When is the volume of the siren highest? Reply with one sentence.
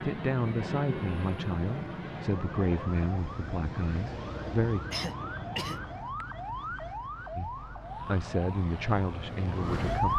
The loudest moment of the siren is at 10 seconds.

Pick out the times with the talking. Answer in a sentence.
You can hear the talking from 0.0 to 4.8 s and from 7.3 to 10.1 s.